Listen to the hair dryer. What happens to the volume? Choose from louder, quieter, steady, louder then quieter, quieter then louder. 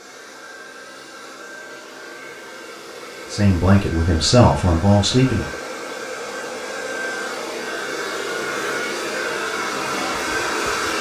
louder.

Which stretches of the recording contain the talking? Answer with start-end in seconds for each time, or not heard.
3.3-5.5.